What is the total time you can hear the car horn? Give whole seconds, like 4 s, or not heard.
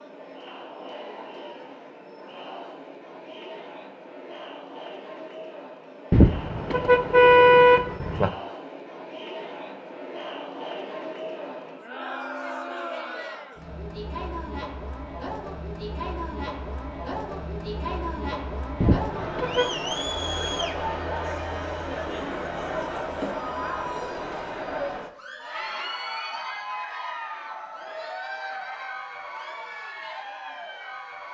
3 s.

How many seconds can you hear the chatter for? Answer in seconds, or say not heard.
31 s.